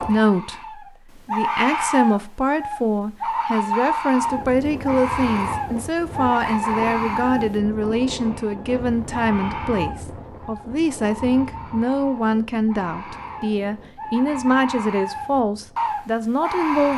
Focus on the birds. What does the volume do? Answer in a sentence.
The volume of the birds goes down, then up.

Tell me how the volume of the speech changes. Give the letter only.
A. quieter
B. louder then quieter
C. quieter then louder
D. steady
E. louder
D.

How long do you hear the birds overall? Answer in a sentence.
The birds can be heard for 17 seconds in total.